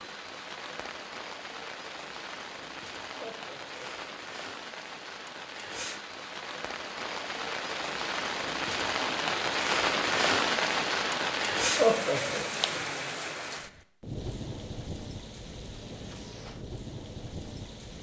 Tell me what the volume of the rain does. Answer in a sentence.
The loudness of the rain goes up, then down.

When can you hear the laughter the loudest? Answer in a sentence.
The volume of the laughter peaks at 12 seconds.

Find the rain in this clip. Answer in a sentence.
The rain can be heard from 0.0 to 17.9 s.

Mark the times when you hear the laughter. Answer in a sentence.
You can hear the laughter from 3.1 to 3.9 s and from 11.8 to 12.4 s.